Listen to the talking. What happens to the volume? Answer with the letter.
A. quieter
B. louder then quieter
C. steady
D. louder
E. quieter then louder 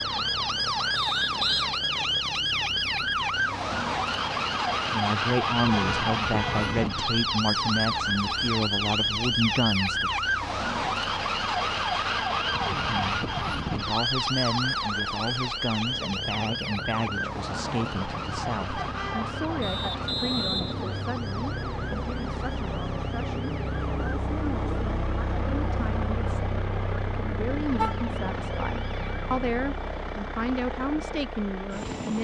E.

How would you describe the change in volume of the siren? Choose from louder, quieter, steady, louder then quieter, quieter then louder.
quieter.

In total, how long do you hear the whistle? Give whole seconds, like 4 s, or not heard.
2 s.